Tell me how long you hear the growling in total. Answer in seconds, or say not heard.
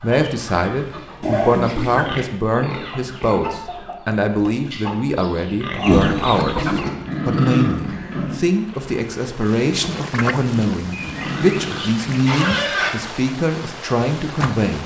5 s.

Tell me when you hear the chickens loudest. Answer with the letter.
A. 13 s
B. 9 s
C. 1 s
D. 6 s
D.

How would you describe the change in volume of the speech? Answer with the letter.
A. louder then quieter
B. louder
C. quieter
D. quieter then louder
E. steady
E.